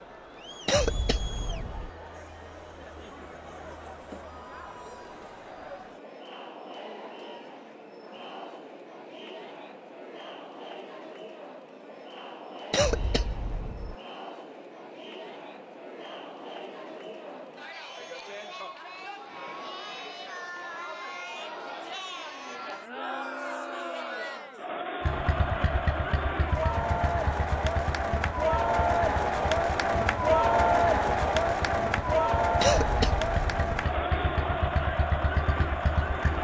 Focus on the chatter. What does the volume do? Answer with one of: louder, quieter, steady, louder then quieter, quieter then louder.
louder.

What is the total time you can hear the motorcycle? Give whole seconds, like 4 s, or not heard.
11 s.